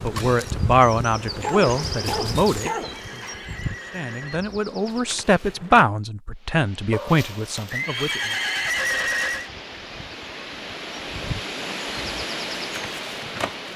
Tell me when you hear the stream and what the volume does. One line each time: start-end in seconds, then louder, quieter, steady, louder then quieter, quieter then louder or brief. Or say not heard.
6.3-13.7 louder.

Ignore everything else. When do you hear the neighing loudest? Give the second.
9 s.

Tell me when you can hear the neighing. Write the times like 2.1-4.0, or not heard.
2.6-4.4, 7.7-9.5.